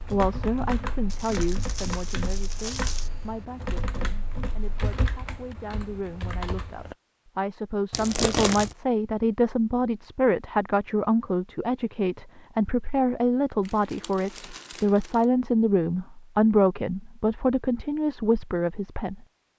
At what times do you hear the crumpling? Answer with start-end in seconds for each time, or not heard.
1.1-3.1, 7.9-8.8, 13.6-15.2.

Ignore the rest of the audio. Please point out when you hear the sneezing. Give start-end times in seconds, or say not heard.
not heard.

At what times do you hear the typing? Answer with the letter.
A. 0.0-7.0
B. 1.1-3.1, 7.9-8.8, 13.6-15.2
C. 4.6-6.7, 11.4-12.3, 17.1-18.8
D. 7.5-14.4
A.